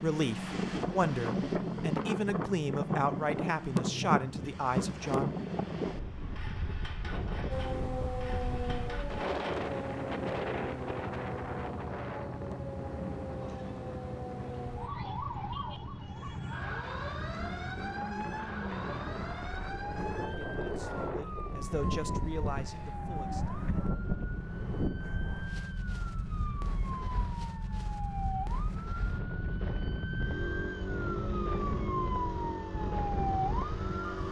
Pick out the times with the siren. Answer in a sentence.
The siren can be heard from 7.5 to 34.2 s.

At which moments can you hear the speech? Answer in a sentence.
The speech can be heard from 0.0 to 5.3 s and from 20.2 to 23.4 s.